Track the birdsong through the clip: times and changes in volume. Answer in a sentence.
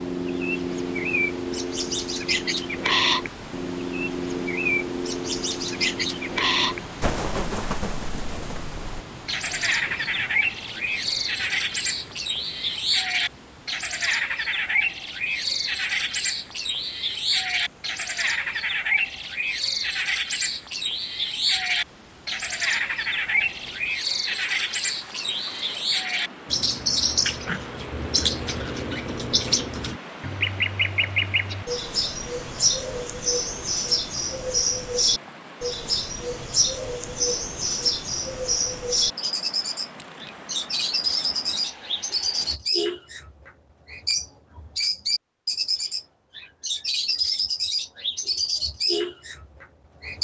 The birdsong can be heard from 0.0 to 50.2 s, at a steady volume.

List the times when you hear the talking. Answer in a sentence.
You can't hear the talking here.